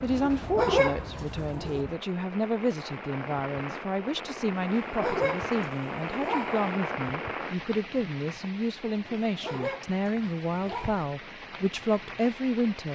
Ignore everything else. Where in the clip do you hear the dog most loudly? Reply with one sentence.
The loudest moment of the dog is at 1 second.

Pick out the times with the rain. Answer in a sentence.
You can hear the rain from 0.0 to 12.9 s.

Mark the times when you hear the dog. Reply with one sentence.
You can hear the dog from 0.1 to 1.9 s, from 4.6 to 6.7 s and from 9.2 to 10.9 s.